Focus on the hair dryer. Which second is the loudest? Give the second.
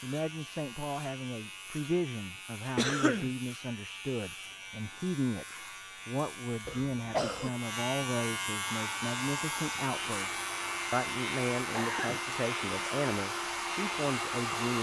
14 s.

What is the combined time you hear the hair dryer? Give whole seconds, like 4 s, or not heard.
6 s.